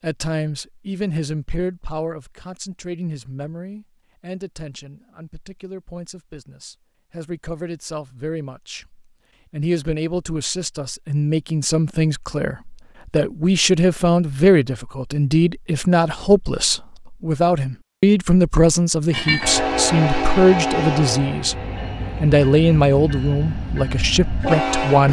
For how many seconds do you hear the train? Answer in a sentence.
You can hear the train for 6 seconds altogether.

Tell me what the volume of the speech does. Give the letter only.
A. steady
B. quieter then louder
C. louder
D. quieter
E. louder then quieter
C.